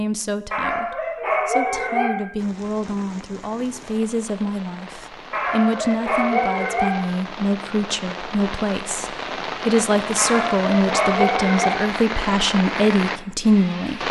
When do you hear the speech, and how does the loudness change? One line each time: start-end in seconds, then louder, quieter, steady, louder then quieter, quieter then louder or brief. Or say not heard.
0.0-14.0 louder.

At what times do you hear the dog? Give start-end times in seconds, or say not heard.
0.5-2.1, 5.3-7.0, 10.2-11.8.